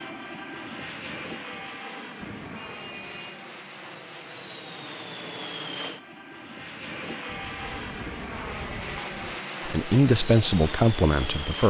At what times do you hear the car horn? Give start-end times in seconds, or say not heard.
2.2-3.5, 7.3-9.4.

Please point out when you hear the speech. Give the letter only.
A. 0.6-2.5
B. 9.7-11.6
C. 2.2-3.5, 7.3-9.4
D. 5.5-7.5
B.